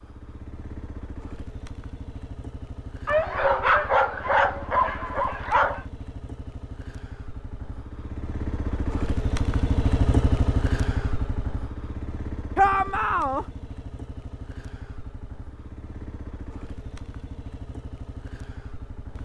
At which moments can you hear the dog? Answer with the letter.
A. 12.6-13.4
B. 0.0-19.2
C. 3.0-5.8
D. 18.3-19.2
C.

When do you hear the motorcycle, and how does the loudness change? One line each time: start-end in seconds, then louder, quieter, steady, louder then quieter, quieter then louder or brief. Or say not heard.
0.0-19.2 louder then quieter.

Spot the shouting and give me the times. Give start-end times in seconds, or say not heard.
12.6-13.4.